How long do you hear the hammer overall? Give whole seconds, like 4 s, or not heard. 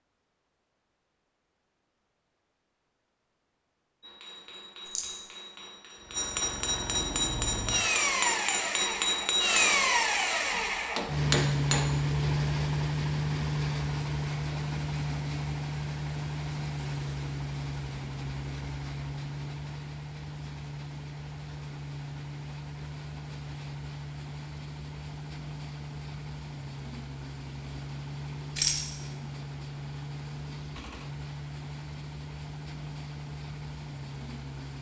8 s.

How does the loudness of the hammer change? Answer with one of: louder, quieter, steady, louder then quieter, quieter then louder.
louder.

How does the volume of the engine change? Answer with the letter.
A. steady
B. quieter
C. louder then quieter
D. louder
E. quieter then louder
B.